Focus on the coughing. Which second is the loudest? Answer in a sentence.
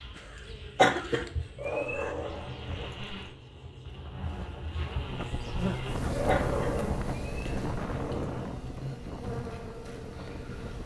The volume of the coughing peaks at 1 second.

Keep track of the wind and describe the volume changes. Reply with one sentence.
The volume of the wind goes down.